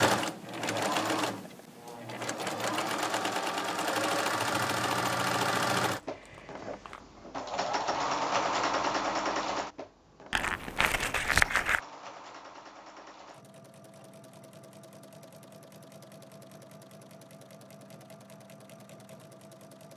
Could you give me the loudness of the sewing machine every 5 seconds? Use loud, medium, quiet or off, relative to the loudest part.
loud, loud, quiet, quiet.